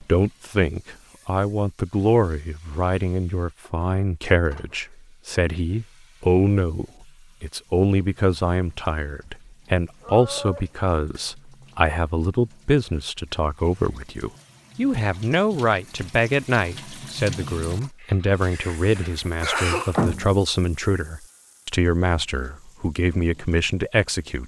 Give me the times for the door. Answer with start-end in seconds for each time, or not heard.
18.8-20.4.